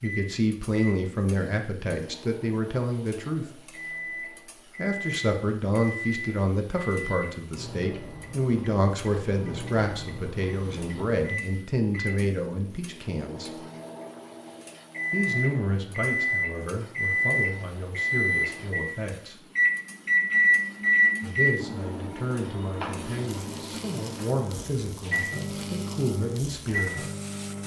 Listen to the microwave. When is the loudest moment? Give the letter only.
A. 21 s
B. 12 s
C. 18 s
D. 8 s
A.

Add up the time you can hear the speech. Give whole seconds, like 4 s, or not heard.
23 s.